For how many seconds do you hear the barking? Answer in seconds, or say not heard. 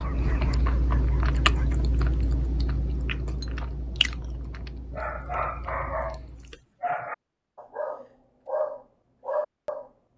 7 s.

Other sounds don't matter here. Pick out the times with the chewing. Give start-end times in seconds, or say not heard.
0.0-6.6.